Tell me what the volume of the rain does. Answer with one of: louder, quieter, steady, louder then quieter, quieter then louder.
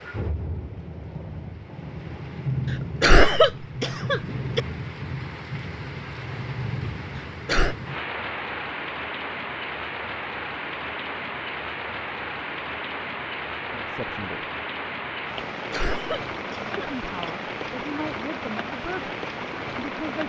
steady.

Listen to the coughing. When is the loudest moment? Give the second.
3 s.